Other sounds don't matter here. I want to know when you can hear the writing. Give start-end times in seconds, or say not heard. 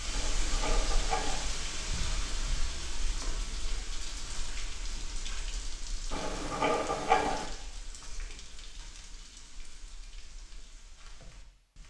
0.1-1.5, 6.1-7.5.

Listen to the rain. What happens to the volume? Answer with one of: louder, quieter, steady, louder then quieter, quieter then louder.
quieter.